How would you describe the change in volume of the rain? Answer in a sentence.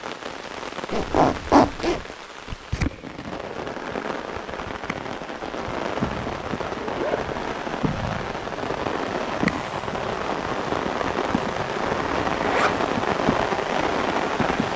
The loudness of the rain goes up.